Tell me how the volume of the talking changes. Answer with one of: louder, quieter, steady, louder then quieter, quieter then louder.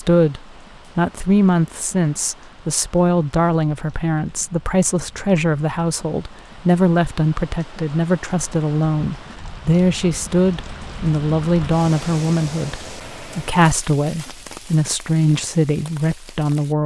steady.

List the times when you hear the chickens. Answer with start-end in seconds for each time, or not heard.
not heard.